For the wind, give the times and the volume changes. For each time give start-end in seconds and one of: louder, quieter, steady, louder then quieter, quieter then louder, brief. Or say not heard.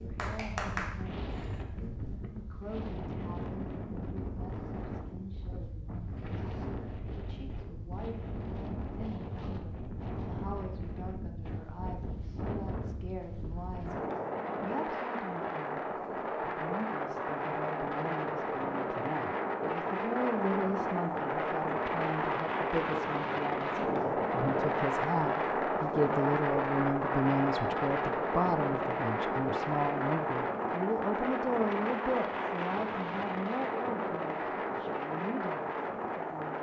0.0-36.5 louder.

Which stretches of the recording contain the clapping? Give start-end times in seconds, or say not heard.
0.0-1.9.